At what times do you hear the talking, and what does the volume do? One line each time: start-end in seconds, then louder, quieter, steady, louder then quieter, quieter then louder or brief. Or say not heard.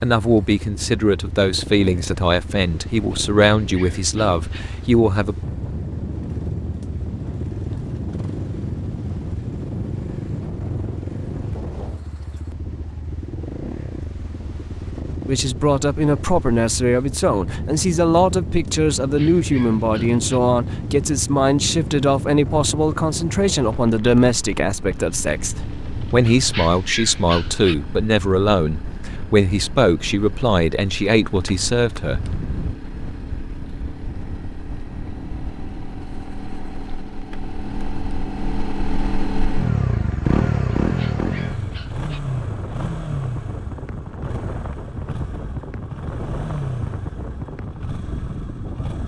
0.0-5.3 steady
15.2-32.2 steady.